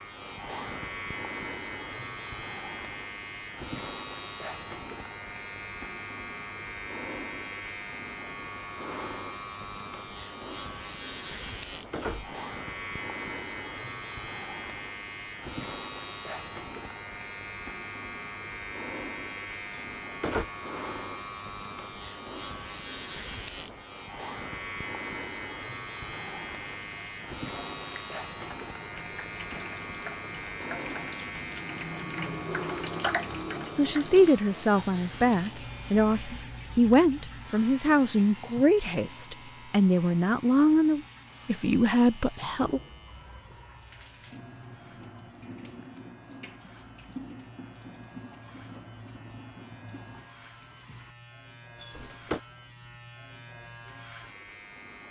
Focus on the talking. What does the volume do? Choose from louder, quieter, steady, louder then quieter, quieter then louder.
steady.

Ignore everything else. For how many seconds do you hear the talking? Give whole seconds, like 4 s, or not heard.
9 s.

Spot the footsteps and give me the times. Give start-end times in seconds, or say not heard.
not heard.